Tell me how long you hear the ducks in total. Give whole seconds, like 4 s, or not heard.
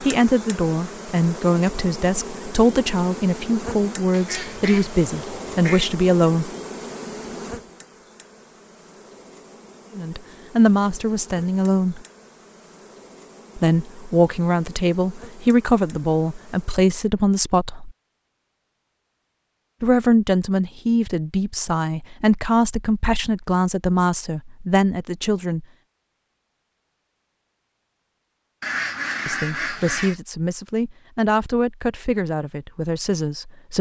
3 s.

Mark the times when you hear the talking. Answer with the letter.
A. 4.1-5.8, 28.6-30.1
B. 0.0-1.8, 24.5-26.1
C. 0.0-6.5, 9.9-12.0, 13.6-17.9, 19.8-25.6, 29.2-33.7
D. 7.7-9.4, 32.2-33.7
C.